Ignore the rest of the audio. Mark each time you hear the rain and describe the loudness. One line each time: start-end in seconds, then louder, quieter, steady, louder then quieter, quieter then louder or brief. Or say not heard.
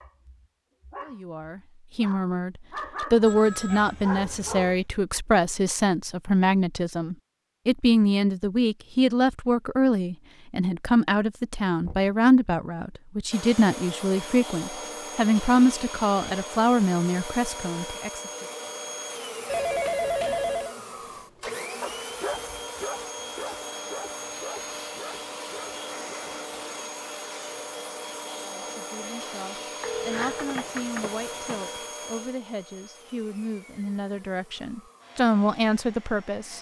not heard.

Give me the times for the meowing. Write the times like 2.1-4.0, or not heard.
not heard.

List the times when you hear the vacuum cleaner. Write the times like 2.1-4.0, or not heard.
13.3-36.5.